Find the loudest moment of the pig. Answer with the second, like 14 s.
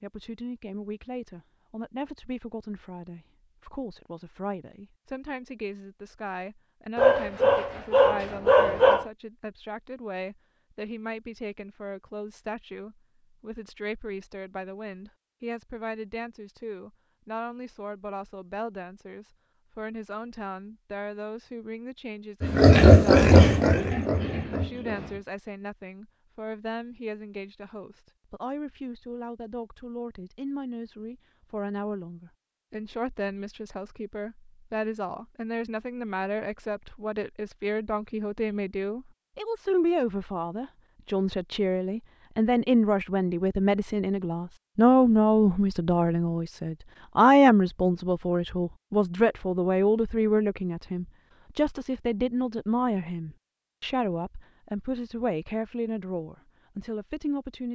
23 s.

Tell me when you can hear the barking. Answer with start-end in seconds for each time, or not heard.
7.0-9.1.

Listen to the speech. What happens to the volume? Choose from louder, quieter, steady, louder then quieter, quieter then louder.
louder.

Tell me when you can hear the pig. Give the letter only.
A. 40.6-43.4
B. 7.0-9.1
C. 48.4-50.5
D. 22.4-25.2
D.